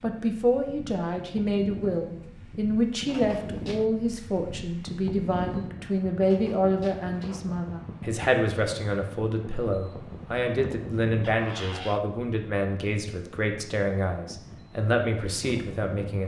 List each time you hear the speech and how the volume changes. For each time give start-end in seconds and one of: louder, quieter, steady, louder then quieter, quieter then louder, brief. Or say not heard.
0.0-16.2 steady.